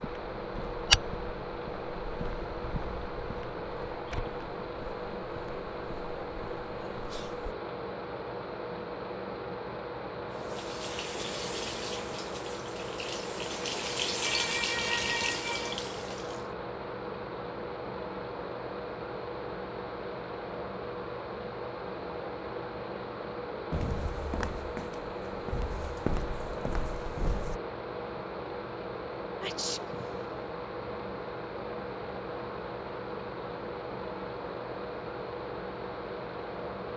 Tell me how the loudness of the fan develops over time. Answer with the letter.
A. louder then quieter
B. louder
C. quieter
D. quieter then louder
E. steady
E.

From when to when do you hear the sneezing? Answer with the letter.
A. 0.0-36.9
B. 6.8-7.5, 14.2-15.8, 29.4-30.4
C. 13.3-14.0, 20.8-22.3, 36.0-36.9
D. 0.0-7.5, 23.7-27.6
B.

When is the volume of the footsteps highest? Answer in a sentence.
The loudest moment of the footsteps is at 1 second.